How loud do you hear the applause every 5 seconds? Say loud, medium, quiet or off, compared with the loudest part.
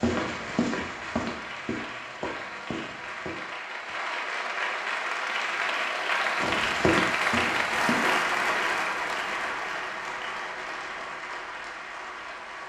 medium, loud, medium.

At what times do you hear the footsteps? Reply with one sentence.
You can hear the footsteps from 0.0 to 3.4 s and from 6.4 to 8.1 s.